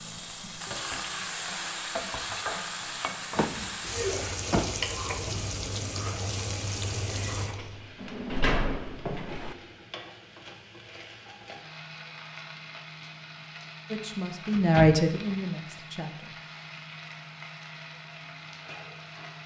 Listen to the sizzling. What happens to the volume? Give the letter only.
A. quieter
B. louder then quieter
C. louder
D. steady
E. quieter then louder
A.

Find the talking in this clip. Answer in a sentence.
The talking can be heard from 13.8 to 16.4 s.